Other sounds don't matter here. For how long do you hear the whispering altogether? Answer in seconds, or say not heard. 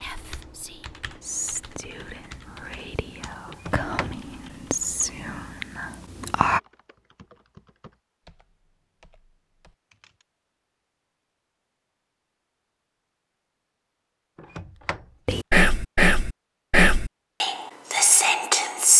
10 s.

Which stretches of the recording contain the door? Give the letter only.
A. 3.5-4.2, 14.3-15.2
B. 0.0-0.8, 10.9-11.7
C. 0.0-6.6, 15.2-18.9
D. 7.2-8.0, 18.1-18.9
A.